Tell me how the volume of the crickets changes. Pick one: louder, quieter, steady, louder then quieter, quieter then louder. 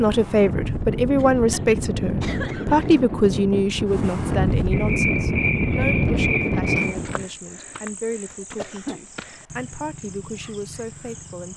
quieter.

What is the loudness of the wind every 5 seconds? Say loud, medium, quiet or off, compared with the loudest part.
loud, loud, off.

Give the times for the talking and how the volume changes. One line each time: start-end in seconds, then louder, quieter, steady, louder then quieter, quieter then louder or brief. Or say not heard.
0.0-11.5 quieter.